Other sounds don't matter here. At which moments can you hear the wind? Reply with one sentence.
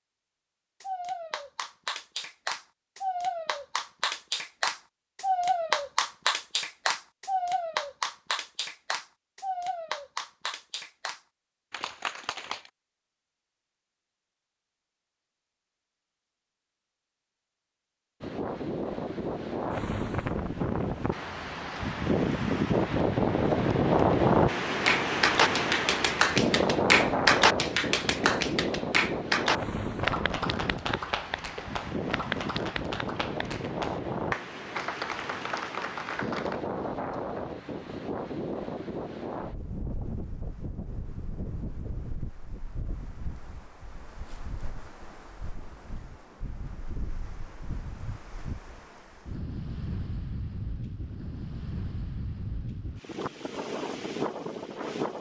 You can hear the wind from 18.2 to 55.1 s.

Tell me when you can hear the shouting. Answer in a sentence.
You can't hear the shouting here.